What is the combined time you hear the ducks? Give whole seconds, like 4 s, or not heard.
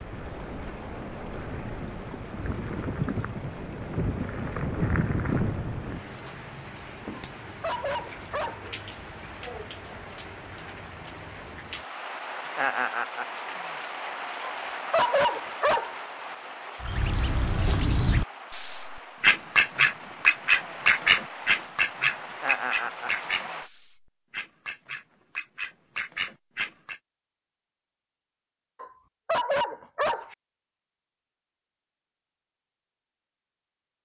10 s.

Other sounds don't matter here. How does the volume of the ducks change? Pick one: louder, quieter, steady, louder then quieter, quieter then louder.
louder then quieter.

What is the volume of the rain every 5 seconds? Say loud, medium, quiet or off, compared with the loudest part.
loud, loud, loud, medium, loud, off, off.